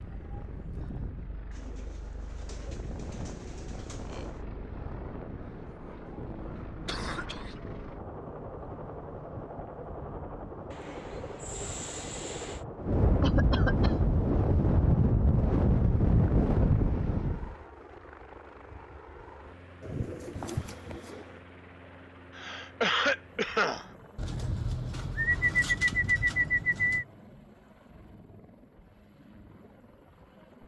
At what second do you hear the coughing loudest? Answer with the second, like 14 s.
23 s.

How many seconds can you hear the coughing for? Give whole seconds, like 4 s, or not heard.
3 s.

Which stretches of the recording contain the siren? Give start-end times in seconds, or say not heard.
not heard.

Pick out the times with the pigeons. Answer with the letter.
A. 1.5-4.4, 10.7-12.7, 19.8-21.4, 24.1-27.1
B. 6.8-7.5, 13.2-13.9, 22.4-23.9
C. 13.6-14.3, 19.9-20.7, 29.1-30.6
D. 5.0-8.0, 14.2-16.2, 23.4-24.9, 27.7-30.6
A.